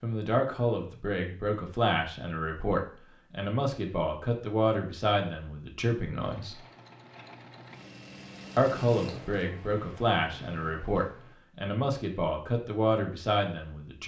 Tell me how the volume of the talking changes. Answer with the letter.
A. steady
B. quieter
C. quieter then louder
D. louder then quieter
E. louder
A.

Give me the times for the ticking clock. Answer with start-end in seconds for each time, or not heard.
not heard.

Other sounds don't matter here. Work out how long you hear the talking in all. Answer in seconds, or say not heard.
12 s.